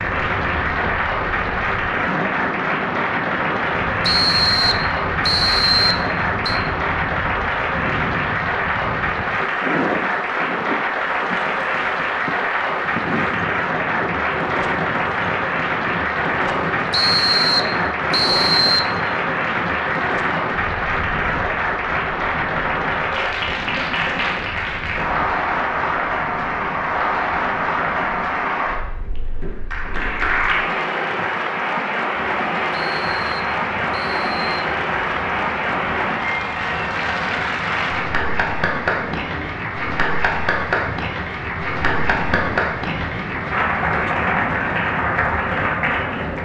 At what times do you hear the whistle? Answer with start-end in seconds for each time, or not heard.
4.0-6.6, 16.9-18.9, 32.8-34.5.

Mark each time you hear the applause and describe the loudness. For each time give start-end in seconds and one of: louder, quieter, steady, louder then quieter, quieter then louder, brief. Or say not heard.
0.0-46.4 steady.